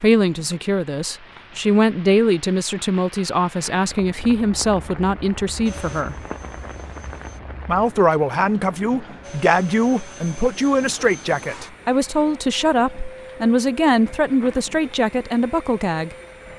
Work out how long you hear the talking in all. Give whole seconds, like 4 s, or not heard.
15 s.